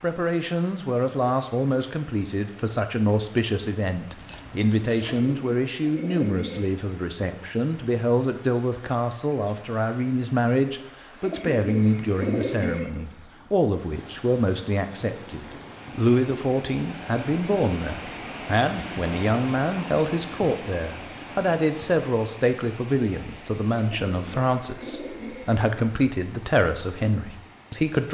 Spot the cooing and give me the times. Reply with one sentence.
You can hear the cooing from 5.0 to 6.7 s, from 11.2 to 12.9 s and from 23.8 to 25.5 s.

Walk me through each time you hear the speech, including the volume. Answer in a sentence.
You can hear the speech from 0.0 to 28.0 s, at a steady volume.